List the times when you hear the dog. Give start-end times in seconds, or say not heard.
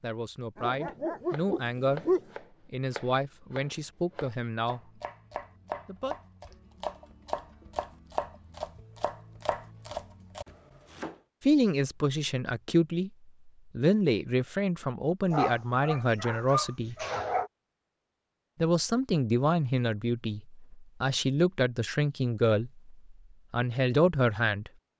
0.6-2.2, 15.3-17.5.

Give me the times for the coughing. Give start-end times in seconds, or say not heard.
not heard.